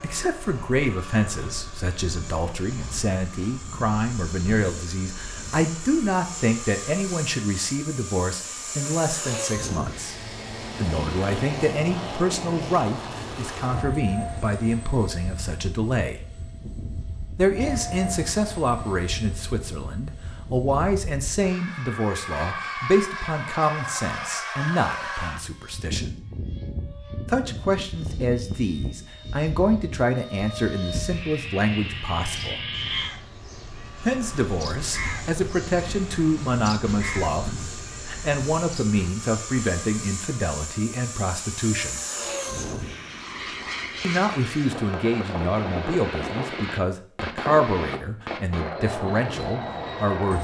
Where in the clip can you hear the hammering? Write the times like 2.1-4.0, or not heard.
not heard.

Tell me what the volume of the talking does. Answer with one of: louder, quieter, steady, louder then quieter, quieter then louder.
steady.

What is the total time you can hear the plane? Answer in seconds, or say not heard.
50 s.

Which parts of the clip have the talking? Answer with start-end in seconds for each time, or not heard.
0.0-10.2, 10.8-16.2, 17.4-26.1, 27.2-32.6, 34.0-42.0, 44.0-50.3.